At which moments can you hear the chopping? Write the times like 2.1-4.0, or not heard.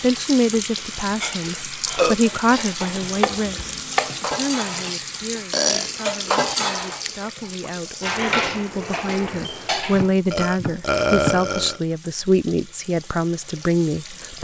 2.8-4.3, 9.9-11.5.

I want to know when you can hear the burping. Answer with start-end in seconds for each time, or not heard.
1.2-2.8, 5.5-5.9, 6.5-7.1, 10.3-11.8.